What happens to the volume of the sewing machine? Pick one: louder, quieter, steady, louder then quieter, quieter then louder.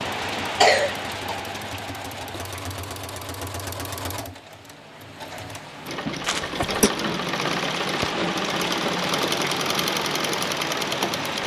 louder.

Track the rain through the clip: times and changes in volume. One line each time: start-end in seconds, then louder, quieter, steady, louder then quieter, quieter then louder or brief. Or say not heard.
0.0-11.4 quieter then louder.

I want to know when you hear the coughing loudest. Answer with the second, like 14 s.
1 s.